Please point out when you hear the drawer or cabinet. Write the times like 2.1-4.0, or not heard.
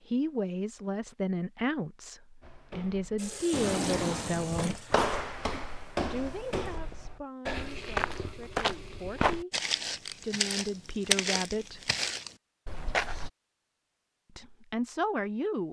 3.5-4.8.